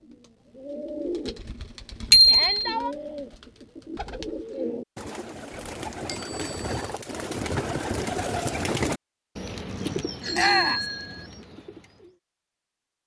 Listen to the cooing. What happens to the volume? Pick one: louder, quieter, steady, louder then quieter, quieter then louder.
louder then quieter.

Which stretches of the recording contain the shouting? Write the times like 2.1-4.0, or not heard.
2.2-3.0, 10.3-10.8.